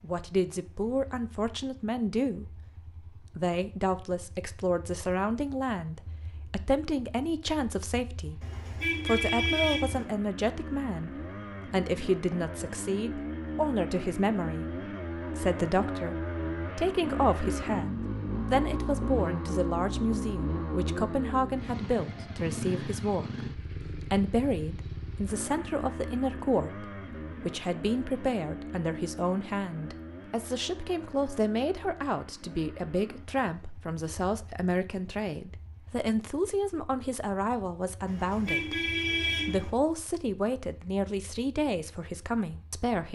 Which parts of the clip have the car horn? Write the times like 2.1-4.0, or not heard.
8.4-10.1, 38.0-39.7.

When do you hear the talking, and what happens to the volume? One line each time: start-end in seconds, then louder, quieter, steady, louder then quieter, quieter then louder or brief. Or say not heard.
0.0-43.1 steady.